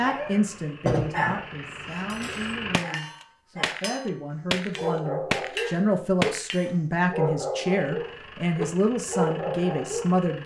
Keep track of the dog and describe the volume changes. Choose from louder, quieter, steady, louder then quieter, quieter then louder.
quieter then louder.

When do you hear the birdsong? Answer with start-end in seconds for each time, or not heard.
not heard.